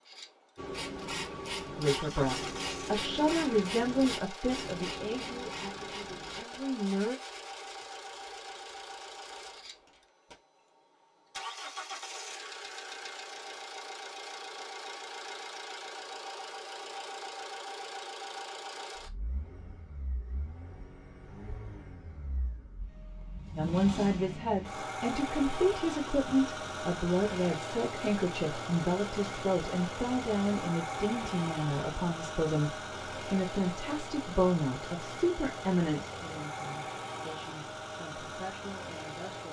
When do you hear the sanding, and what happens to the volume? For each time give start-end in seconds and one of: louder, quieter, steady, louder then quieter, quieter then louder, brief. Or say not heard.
0.6-10.3 quieter.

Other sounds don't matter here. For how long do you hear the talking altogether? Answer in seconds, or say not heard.
21 s.